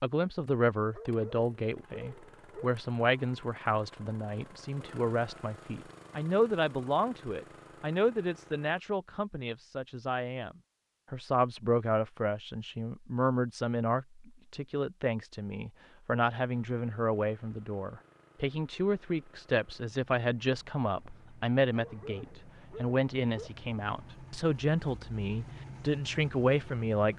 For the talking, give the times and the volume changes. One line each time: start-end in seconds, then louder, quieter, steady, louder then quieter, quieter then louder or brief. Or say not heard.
0.0-27.1 steady.